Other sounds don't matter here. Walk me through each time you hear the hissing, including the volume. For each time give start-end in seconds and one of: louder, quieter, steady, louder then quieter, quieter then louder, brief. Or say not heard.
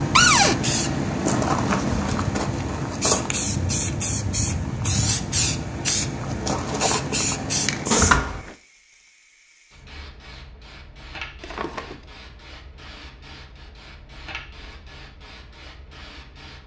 0.0-16.6 quieter.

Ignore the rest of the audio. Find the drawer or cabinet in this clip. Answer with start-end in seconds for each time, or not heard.
0.1-0.6, 7.9-8.6, 11.4-12.1.